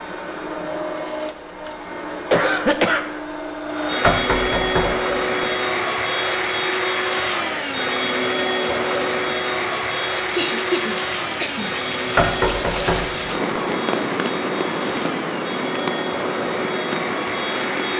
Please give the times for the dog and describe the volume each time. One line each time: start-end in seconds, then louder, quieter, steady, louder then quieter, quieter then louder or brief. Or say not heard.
not heard.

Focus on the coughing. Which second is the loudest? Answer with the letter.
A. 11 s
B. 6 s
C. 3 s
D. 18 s
C.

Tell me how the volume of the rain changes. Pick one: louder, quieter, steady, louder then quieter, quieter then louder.
louder.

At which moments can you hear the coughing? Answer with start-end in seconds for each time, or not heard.
2.3-3.0, 10.3-11.7.